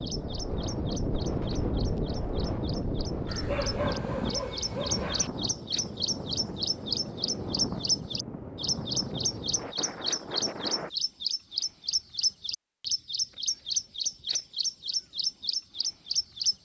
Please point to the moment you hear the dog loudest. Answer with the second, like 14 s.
4 s.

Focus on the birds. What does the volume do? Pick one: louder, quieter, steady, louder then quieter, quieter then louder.
louder.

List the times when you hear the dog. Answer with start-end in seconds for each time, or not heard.
3.2-5.3.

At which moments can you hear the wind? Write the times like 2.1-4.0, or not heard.
0.0-10.9.